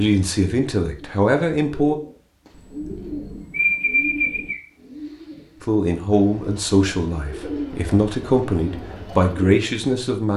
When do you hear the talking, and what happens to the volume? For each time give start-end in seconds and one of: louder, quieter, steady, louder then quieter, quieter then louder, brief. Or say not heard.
0.0-1.9 brief
5.6-10.3 quieter then louder.